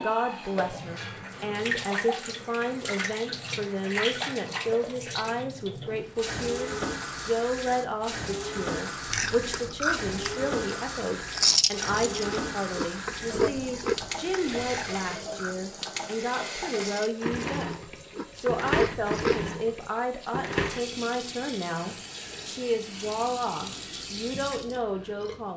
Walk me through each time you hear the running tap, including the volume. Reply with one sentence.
The running tap can be heard from 0.0 to 25.5 s, at a steady volume.